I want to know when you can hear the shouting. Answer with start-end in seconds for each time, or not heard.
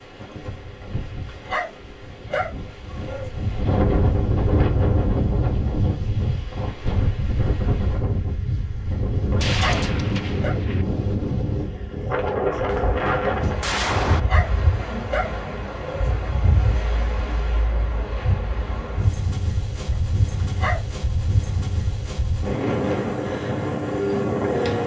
not heard.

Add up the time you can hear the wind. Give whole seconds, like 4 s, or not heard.
25 s.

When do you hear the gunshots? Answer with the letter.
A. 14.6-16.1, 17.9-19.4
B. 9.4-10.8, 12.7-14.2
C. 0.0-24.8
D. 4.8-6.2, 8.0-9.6
B.